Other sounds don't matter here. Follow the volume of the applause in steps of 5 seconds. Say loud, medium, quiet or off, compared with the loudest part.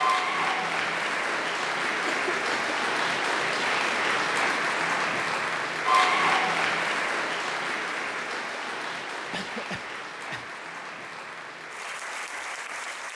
loud, loud, medium.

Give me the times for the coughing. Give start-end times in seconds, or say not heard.
2.0-2.9, 9.3-10.5.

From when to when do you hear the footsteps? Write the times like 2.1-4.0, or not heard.
not heard.